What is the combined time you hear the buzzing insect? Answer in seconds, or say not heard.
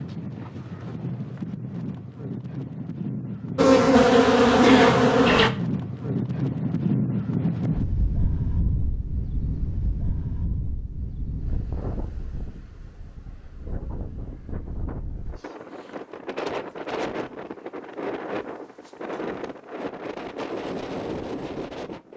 2 s.